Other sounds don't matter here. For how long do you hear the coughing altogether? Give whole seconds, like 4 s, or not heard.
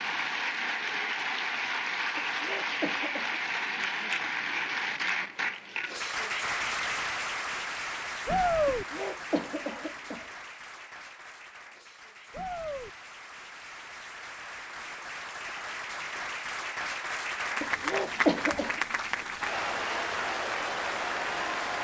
4 s.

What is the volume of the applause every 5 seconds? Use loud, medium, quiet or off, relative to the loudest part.
loud, loud, quiet, loud, loud.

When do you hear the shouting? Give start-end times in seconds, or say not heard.
8.2-8.8, 12.3-12.9.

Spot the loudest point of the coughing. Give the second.
18 s.